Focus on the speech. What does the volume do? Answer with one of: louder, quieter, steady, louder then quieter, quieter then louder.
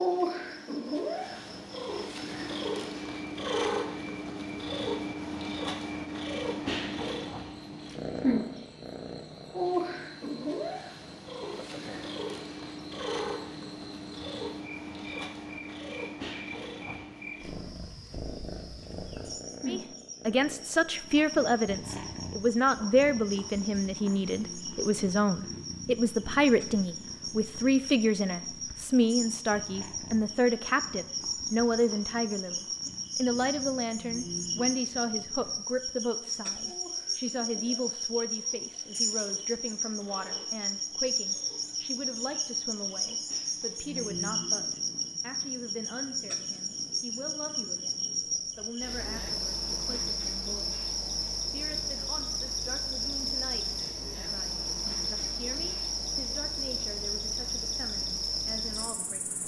quieter.